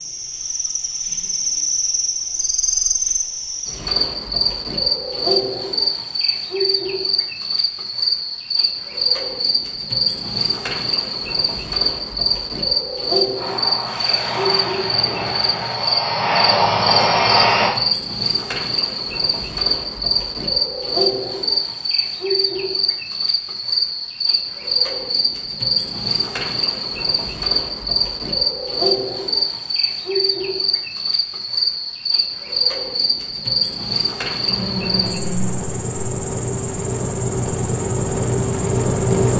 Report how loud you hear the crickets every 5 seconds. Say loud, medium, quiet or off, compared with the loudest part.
loud, loud, loud, loud, loud, loud, loud, medium.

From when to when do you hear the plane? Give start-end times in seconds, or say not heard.
13.3-17.8, 34.4-39.3.